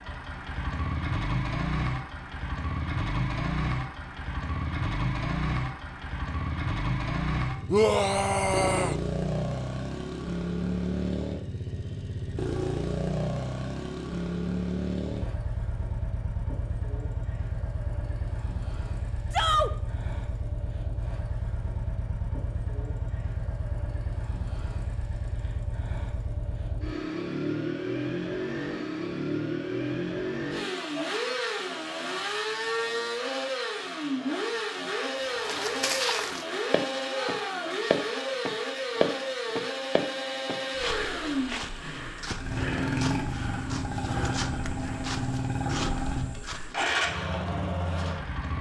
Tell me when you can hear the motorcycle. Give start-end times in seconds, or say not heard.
0.0-48.5.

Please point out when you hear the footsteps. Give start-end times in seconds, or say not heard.
35.1-46.8.